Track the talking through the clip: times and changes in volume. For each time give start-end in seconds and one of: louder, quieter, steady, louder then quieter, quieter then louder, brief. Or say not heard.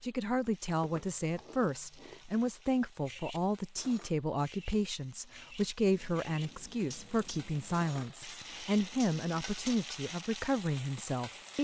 0.0-11.5 steady.